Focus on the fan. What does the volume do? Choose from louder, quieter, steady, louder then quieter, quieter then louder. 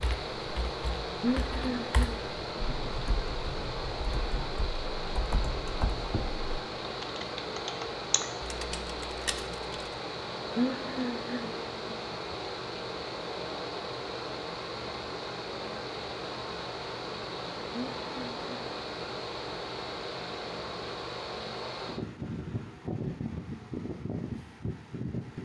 steady.